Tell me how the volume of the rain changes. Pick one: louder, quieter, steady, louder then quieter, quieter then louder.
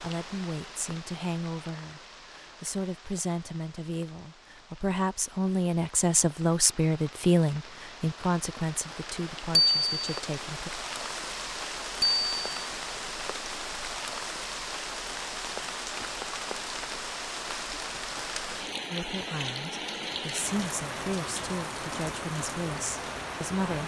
louder.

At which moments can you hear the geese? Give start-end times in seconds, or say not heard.
not heard.